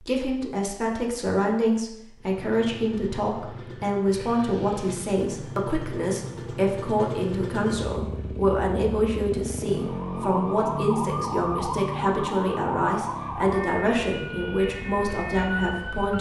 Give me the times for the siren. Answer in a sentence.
The siren can be heard from 9.7 to 16.1 s.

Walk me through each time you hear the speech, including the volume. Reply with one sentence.
The speech can be heard from 0.0 to 16.1 s, at a steady volume.